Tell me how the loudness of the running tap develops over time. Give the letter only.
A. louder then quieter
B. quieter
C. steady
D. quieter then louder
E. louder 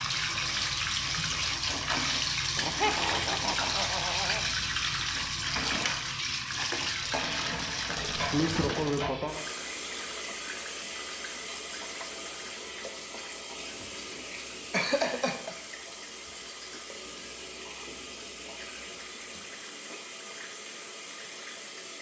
B.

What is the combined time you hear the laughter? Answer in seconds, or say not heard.
4 s.